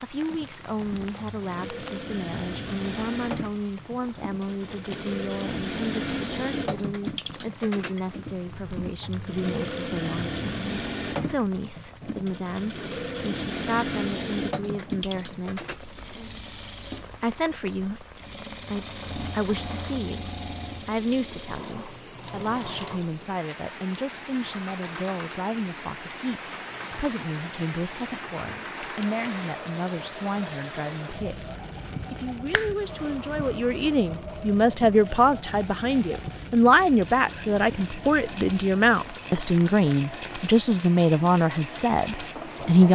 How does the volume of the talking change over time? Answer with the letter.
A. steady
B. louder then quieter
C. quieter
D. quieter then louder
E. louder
E.